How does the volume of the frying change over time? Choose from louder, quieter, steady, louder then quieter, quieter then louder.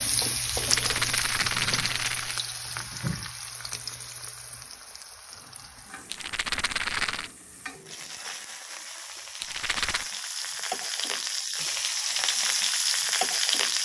quieter then louder.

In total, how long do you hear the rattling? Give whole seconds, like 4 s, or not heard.
4 s.